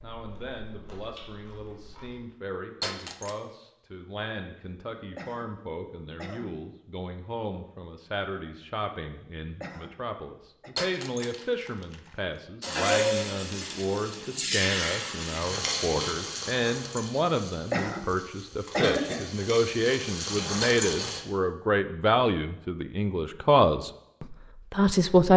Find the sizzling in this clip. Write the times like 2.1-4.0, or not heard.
12.6-21.2.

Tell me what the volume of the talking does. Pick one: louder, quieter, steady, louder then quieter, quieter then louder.
louder.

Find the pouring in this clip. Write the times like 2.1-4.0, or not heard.
not heard.